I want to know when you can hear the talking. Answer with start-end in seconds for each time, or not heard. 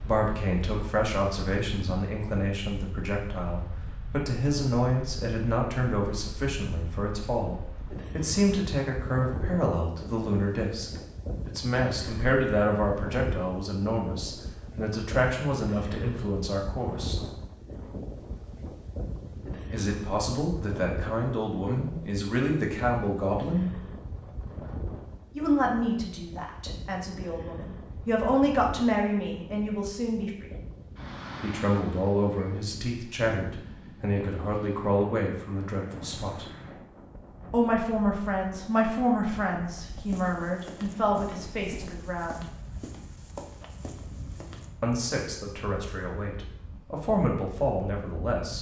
0.0-17.2, 19.7-23.7, 25.4-30.5, 31.4-36.5, 37.5-42.5, 44.8-48.5.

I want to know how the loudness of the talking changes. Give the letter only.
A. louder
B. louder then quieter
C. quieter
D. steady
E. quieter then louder
D.